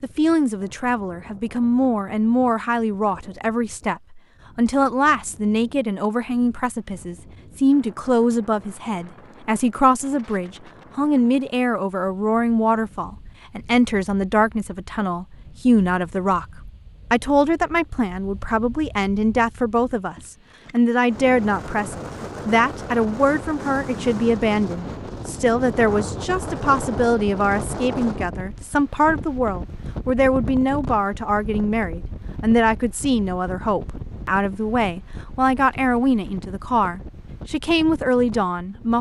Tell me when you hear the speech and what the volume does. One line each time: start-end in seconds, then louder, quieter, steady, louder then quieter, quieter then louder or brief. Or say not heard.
0.0-38.9 steady.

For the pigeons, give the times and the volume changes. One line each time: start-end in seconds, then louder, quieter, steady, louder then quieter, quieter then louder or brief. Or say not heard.
not heard.